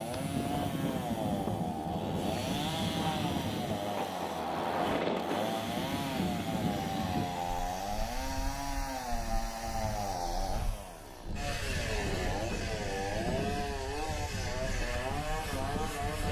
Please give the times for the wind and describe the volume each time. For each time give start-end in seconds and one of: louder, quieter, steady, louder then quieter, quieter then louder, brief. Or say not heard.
0.0-16.2 quieter.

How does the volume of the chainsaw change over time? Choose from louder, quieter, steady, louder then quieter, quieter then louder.
steady.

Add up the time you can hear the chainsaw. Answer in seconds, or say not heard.
16 s.